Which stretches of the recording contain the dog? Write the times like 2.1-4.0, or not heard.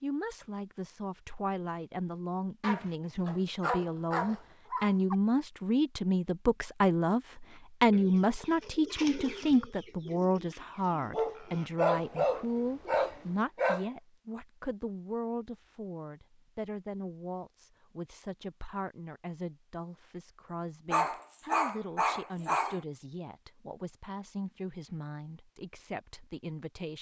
2.6-5.2, 11.1-13.9, 20.9-22.8.